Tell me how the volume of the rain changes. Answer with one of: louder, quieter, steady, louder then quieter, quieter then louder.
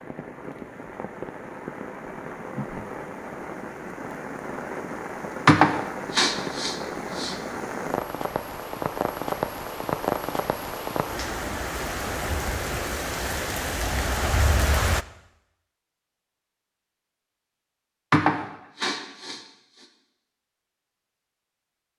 louder.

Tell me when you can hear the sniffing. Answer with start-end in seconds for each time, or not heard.
5.5-7.3, 18.1-19.4.